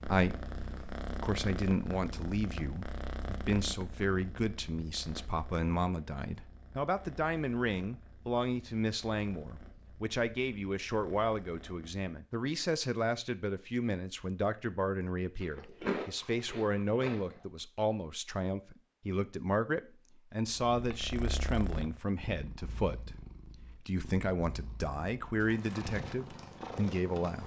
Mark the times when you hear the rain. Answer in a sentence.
The rain can't be heard in this clip.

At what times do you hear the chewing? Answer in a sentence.
You can hear the chewing from 15.4 to 17.4 s.